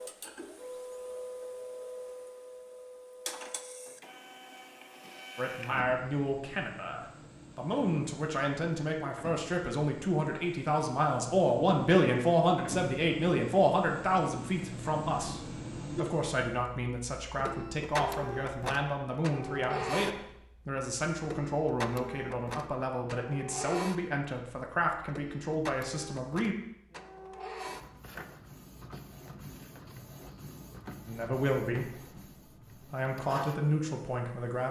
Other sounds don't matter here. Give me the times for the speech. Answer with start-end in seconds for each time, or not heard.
5.3-26.6, 31.1-34.6.